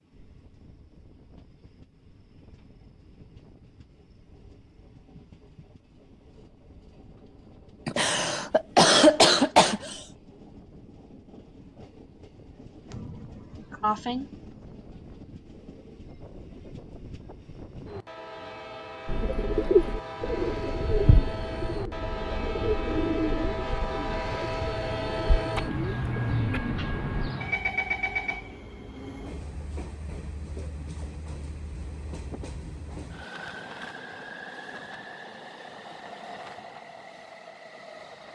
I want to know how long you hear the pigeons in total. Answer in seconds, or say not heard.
8 s.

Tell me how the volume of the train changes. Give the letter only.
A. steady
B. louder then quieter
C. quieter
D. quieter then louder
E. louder
B.